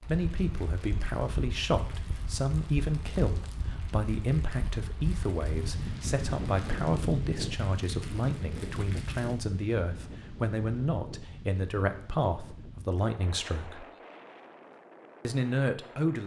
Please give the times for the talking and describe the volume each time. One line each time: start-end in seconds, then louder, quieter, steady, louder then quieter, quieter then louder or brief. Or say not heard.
0.1-13.8 steady
15.2-16.2 brief.